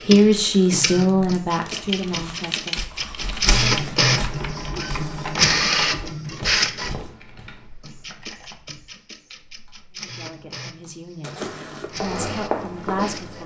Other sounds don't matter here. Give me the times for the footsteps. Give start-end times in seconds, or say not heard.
2.1-7.5, 11.8-13.4.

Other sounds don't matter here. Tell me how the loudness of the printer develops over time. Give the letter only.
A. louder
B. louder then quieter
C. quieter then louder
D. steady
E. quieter
B.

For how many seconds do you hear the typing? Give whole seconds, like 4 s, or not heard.
9 s.